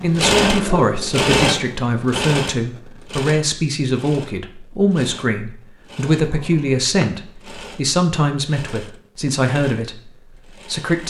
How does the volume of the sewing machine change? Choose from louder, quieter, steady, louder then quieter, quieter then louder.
quieter.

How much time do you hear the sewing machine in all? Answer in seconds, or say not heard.
11 s.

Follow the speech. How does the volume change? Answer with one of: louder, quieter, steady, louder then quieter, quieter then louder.
steady.